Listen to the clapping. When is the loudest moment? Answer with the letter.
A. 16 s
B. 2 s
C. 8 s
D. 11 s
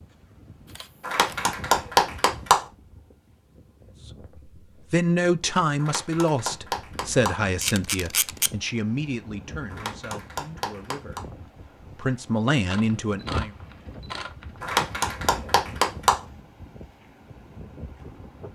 B.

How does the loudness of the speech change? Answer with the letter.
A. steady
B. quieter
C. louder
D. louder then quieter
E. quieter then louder
E.